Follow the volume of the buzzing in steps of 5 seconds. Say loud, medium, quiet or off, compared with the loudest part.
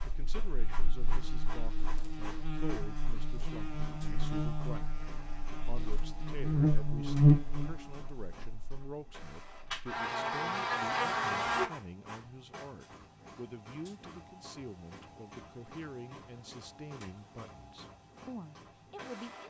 quiet, loud, loud, off.